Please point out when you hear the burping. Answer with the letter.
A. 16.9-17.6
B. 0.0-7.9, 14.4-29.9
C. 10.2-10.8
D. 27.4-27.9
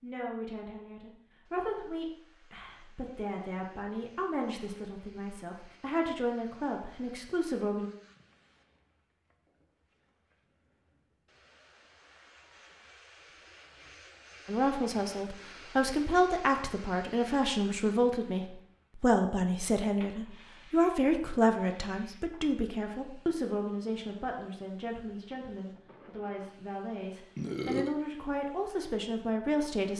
D.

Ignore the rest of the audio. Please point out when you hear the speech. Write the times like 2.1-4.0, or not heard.
0.0-7.9, 14.4-29.9.